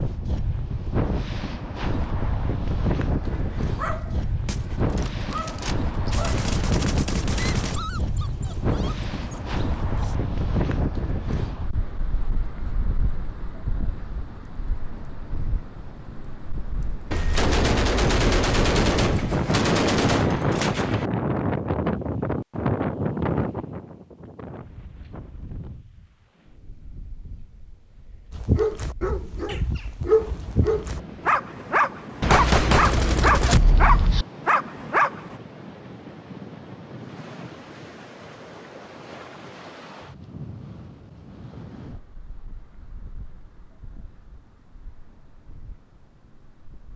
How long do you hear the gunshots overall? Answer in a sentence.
The gunshots can be heard for 9 seconds in total.